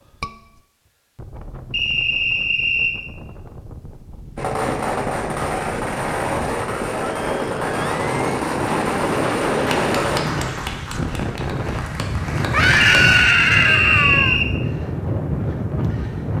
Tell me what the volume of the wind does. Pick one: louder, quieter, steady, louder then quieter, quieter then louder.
louder.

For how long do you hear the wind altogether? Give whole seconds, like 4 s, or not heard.
16 s.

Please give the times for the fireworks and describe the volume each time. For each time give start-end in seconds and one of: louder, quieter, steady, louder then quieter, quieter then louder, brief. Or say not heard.
4.3-10.2 steady.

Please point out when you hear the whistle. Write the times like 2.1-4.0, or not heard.
1.7-3.0, 12.8-14.5.